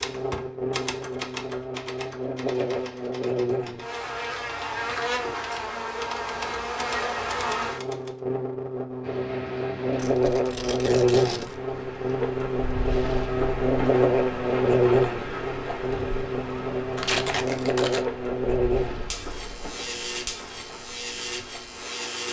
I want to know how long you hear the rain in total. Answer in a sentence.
The rain can be heard for 13 seconds in total.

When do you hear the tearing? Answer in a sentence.
The tearing can be heard from 2.5 to 3.1 s, from 9.9 to 11.6 s and from 16.9 to 18.1 s.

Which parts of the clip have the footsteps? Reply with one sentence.
The footsteps can't be heard in this clip.